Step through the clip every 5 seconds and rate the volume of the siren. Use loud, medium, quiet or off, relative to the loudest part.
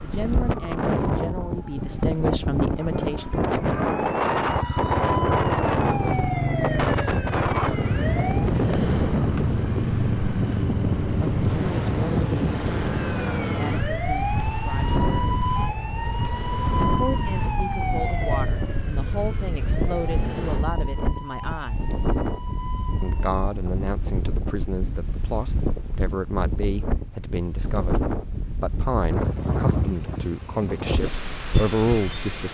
medium, loud, loud, loud, medium, off, off.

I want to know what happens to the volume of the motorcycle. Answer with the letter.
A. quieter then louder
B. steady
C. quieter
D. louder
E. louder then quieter
C.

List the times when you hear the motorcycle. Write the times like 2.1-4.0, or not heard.
4.5-20.6.